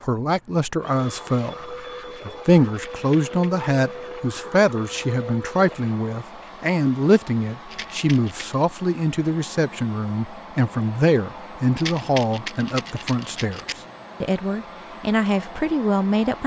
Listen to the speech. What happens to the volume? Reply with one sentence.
The loudness of the speech stays about the same.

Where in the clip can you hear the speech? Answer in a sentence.
You can hear the speech from 0.0 to 16.4 s.